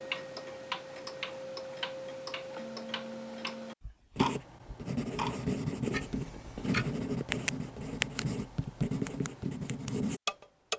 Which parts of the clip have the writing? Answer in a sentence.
The writing can be heard from 4.2 to 10.2 s.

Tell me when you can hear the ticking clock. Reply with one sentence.
You can hear the ticking clock from 0.0 to 8.2 s and from 9.1 to 10.7 s.